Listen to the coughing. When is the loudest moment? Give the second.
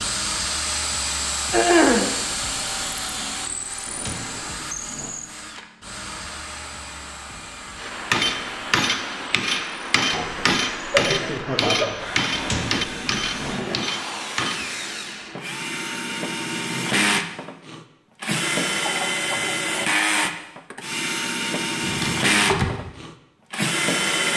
2 s.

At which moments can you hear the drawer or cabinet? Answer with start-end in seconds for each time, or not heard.
3.9-5.2, 12.3-13.6, 21.8-22.8.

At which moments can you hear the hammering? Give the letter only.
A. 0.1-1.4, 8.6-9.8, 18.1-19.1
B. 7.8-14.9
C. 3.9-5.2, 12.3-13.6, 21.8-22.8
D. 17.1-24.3
B.